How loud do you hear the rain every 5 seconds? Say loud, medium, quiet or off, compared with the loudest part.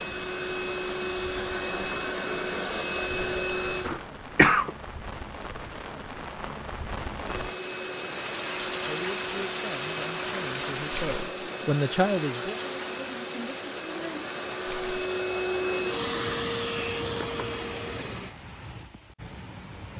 medium, loud, loud, medium.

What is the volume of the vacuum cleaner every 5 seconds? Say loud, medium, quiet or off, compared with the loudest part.
loud, medium, medium, loud.